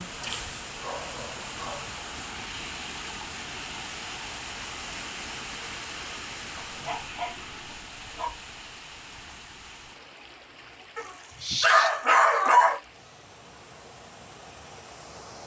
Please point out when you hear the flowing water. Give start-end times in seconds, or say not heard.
0.0-15.4.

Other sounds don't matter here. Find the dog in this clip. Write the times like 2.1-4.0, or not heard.
0.1-1.9, 6.5-8.4, 10.9-12.8.